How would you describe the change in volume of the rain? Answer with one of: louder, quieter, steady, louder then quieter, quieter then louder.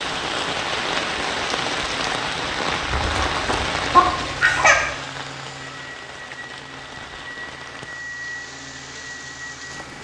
quieter.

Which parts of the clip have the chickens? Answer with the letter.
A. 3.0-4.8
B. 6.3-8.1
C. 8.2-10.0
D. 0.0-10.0
A.